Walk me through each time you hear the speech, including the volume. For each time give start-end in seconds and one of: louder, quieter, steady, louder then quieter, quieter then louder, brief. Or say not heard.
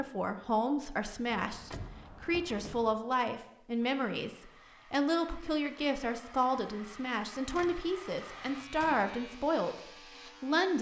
0.0-10.7 steady.